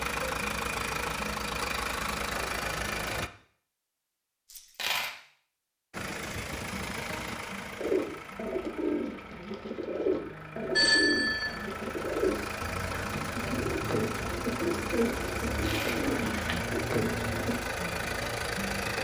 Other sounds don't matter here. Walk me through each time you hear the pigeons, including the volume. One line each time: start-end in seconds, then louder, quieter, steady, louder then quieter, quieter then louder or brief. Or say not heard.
7.8-17.6 steady.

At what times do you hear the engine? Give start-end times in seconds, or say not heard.
0.0-3.3, 5.9-19.0.